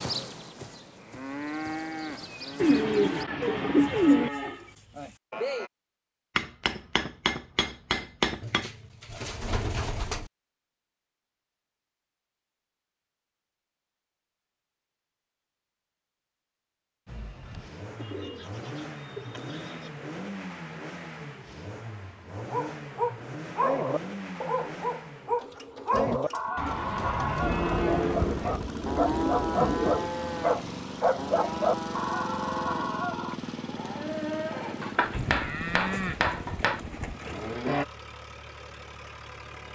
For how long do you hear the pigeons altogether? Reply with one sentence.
The pigeons can be heard for 11 seconds in total.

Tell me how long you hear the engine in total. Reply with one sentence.
You can hear the engine for 23 seconds altogether.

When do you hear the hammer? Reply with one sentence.
The hammer can be heard from 6.3 to 8.7 s and from 34.8 to 36.8 s.